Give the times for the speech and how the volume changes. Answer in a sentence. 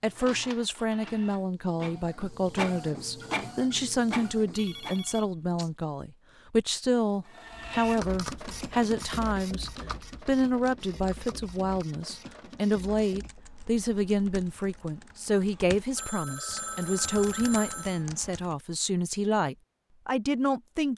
You can hear the speech from 0.0 to 20.9 s, at a steady volume.